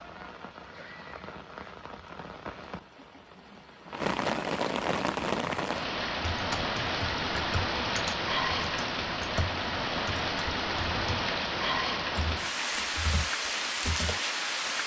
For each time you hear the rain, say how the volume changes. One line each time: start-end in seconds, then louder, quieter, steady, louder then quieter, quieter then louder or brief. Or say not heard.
0.0-14.8 louder.